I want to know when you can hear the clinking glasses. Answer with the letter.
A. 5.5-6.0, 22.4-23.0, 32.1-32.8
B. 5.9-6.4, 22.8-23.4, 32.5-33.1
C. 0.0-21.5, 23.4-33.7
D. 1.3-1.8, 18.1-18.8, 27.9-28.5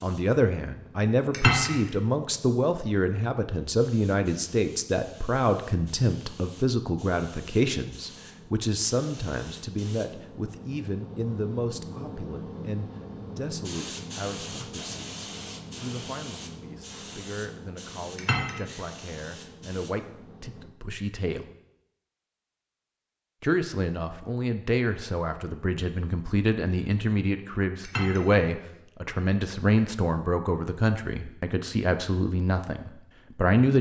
D.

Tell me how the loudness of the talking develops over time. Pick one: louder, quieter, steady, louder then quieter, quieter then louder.
quieter then louder.